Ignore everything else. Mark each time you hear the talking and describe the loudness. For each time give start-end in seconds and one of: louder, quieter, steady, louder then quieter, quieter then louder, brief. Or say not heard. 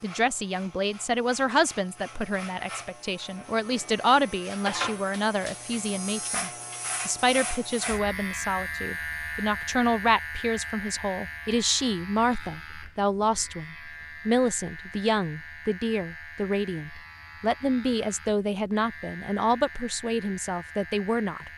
0.0-21.5 steady.